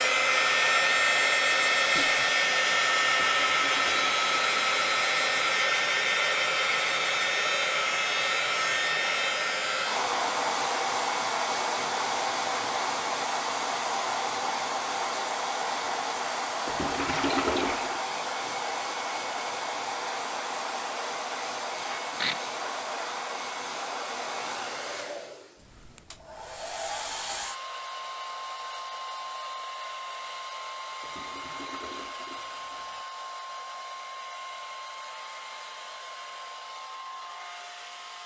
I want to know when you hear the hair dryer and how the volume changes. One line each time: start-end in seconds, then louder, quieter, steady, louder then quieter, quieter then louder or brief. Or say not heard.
0.0-38.2 quieter.